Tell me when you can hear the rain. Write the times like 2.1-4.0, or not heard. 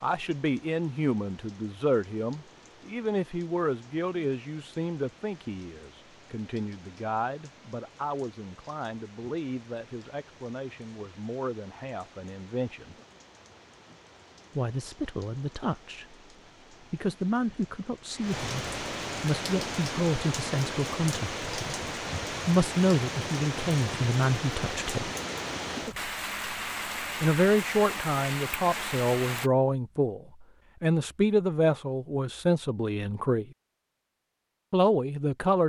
0.0-29.5.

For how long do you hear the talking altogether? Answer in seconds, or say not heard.
29 s.